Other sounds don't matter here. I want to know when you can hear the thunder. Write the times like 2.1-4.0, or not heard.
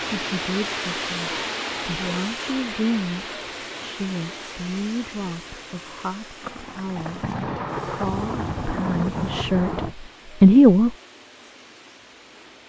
6.4-9.9.